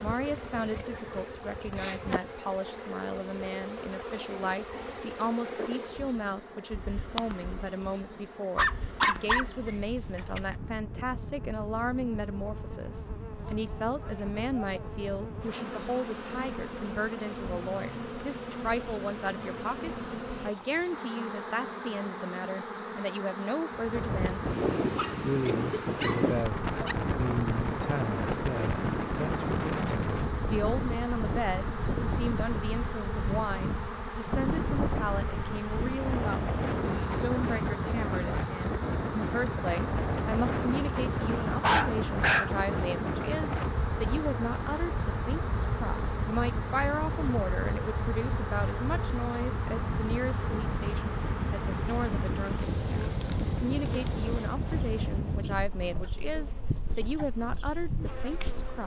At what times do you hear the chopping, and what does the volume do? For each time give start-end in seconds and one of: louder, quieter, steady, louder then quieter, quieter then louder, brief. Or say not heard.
not heard.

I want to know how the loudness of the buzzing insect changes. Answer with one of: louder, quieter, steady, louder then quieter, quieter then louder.
steady.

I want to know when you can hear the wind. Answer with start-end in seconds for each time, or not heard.
23.7-58.8.